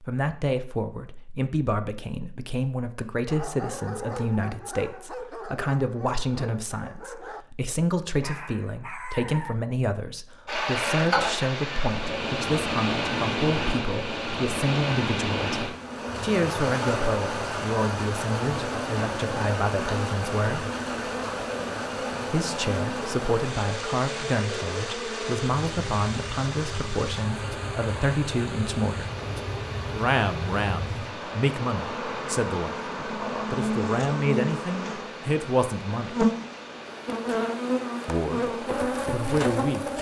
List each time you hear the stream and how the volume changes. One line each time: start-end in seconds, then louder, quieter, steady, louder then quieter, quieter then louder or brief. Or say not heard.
10.4-39.9 quieter.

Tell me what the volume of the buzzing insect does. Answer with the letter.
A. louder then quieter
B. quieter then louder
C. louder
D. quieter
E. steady
C.